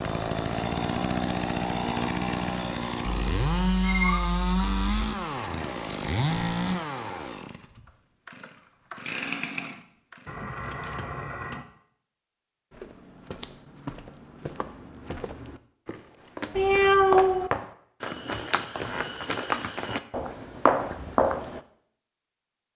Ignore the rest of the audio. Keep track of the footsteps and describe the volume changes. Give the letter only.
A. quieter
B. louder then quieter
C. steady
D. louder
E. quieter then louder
D.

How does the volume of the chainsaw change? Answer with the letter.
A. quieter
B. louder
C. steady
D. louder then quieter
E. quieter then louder
A.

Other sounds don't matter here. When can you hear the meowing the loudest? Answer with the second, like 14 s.
17 s.